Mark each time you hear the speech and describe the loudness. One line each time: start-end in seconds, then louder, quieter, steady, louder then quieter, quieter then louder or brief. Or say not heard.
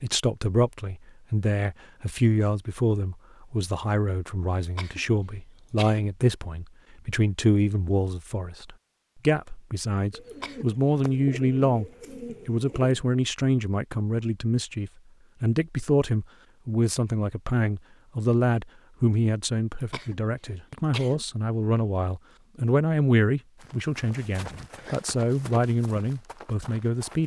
0.0-27.2 steady.